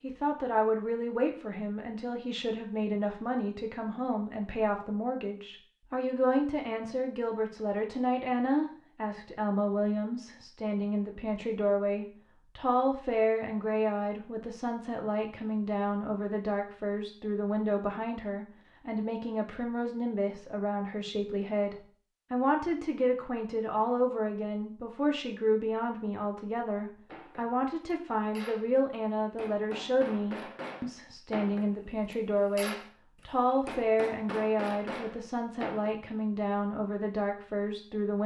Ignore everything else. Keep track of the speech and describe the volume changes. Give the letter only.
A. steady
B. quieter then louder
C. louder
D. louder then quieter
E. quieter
A.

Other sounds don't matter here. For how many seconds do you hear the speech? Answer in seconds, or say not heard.
38 s.